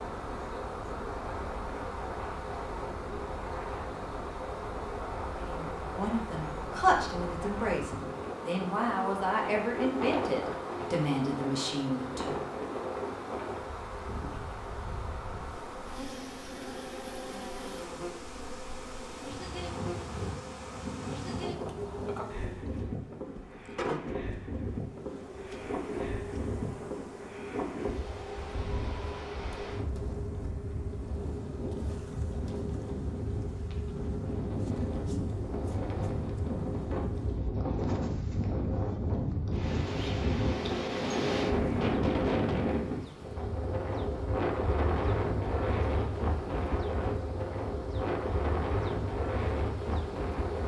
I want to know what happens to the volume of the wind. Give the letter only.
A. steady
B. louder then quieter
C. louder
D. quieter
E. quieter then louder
C.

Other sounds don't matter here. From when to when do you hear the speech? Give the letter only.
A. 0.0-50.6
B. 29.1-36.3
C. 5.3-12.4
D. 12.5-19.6
C.